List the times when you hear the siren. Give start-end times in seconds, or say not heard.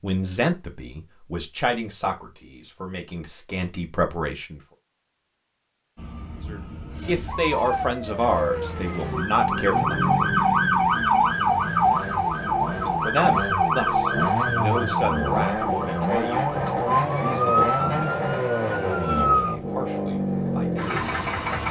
6.0-19.6.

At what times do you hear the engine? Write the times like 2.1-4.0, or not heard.
9.2-21.6.